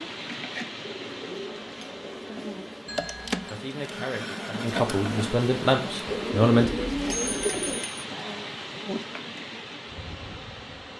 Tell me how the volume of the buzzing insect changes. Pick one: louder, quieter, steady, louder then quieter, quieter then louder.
louder then quieter.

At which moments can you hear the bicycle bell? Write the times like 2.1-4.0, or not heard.
2.9-3.4, 7.1-8.1.